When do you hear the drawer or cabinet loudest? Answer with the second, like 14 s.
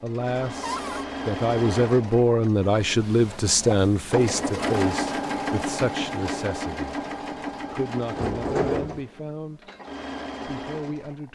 9 s.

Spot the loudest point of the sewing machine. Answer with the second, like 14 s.
5 s.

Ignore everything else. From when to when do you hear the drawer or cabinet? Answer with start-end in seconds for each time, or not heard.
0.6-1.1, 8.2-9.0.